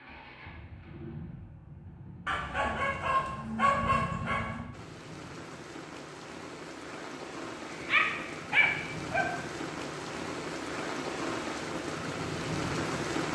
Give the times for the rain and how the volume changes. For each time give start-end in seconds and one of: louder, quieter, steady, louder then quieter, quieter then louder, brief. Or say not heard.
4.7-13.3 louder.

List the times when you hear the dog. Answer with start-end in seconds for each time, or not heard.
2.2-4.7, 7.7-9.2.